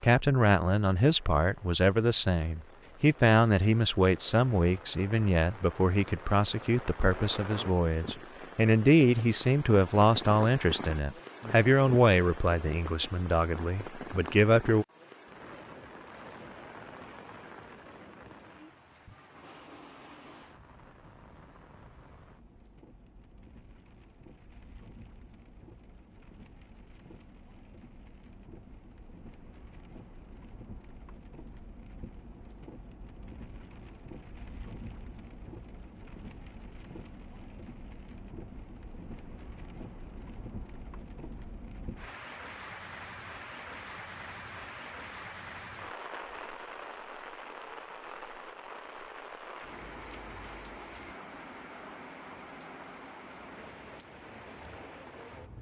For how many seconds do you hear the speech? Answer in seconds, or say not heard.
15 s.